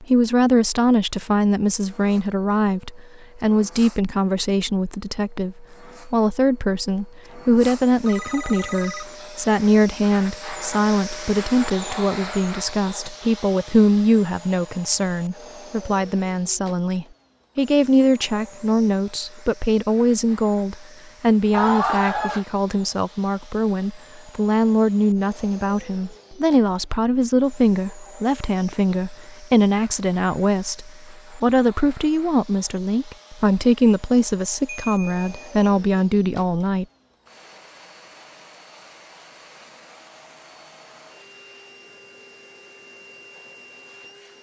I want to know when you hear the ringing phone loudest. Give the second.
22 s.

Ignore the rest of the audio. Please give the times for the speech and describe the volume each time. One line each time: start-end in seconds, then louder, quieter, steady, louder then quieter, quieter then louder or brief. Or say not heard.
0.0-36.9 steady.